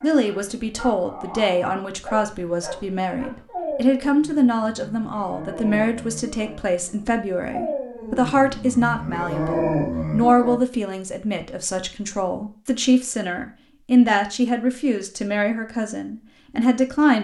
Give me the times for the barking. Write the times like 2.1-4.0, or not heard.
0.0-10.6.